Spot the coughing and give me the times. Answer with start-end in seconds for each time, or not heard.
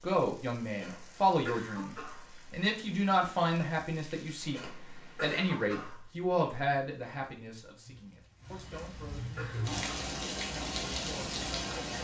0.8-2.3, 4.5-6.0, 8.7-10.2.